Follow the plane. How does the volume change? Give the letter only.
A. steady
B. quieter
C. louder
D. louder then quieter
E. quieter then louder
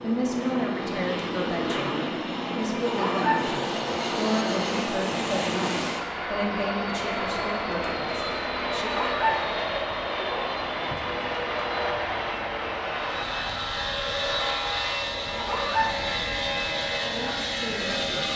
A.